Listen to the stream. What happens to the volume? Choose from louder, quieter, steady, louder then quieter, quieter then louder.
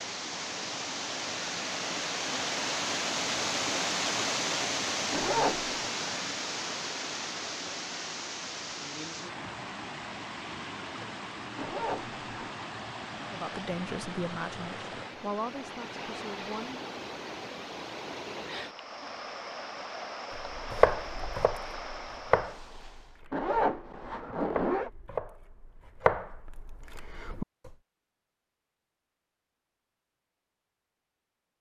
quieter.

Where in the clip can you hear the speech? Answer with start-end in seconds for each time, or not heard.
13.3-16.9.